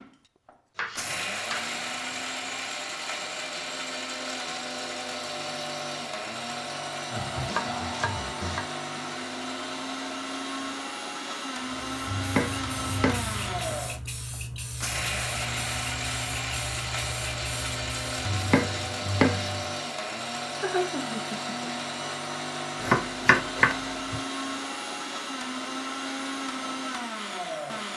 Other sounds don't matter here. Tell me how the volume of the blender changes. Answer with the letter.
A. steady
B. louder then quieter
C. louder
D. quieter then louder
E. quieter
A.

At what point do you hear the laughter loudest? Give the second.
21 s.